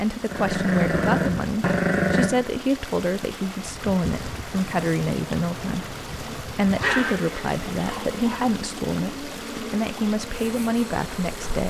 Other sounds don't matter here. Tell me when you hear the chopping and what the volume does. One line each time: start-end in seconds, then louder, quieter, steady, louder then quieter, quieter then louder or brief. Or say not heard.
not heard.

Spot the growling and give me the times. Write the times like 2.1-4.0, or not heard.
0.3-2.3, 6.8-8.2.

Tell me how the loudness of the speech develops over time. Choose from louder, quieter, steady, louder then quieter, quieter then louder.
steady.